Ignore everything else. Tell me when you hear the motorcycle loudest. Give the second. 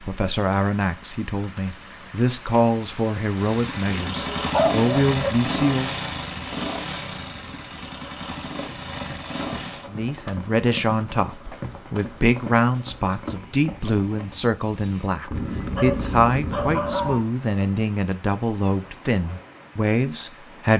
5 s.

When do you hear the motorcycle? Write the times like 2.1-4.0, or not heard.
3.4-9.8.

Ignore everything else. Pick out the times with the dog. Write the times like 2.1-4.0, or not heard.
4.5-5.2, 15.3-17.2.